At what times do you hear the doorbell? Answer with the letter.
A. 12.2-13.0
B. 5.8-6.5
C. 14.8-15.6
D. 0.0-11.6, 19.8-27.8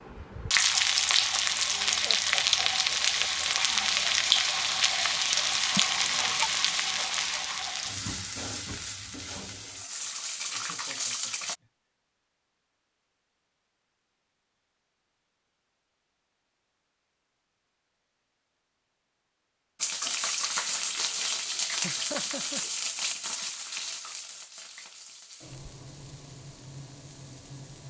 B.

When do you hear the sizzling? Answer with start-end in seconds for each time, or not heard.
0.0-11.6, 19.8-27.8.